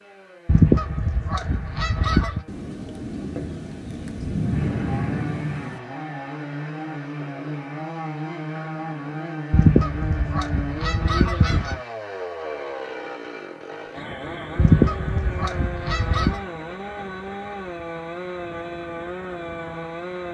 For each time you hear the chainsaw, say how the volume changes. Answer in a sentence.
The chainsaw can be heard from 0.0 to 20.2 s, getting louder.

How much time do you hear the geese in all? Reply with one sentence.
The geese can be heard for 6 seconds in total.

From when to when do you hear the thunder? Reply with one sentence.
You can hear the thunder from 2.5 to 5.8 s.